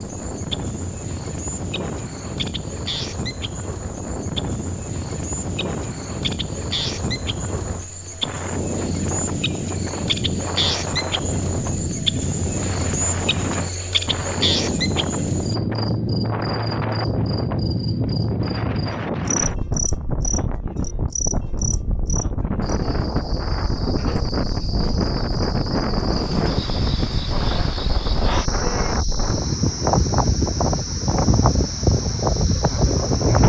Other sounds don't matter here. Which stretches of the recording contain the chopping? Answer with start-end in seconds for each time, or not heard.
not heard.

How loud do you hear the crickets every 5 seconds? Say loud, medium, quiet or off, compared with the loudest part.
medium, medium, loud, loud, medium, medium, medium.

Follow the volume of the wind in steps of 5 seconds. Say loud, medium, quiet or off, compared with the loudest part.
medium, medium, medium, loud, medium, loud, loud.